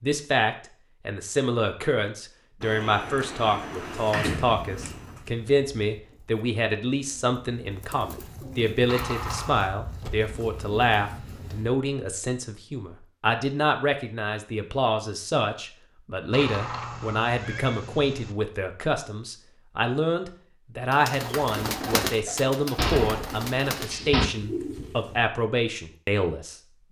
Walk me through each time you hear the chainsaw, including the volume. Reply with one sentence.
The chainsaw can't be heard in this clip.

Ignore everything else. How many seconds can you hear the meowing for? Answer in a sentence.
You can hear the meowing for 3 seconds altogether.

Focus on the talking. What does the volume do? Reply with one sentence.
The loudness of the talking stays about the same.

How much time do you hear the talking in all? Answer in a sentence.
You can hear the talking for 27 seconds altogether.